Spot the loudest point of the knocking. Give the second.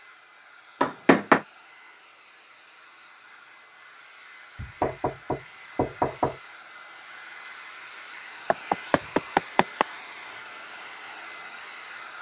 1 s.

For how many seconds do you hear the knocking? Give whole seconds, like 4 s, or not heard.
4 s.